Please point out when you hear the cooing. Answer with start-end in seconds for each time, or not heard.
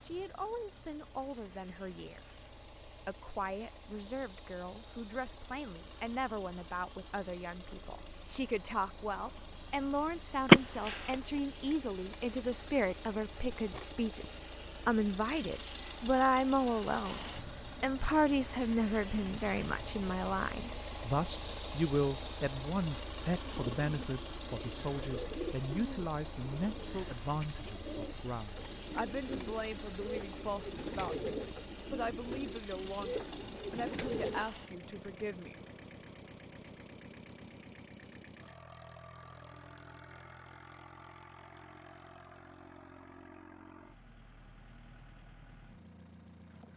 23.3-34.5.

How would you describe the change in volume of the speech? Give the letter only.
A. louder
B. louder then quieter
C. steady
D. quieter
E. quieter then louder
B.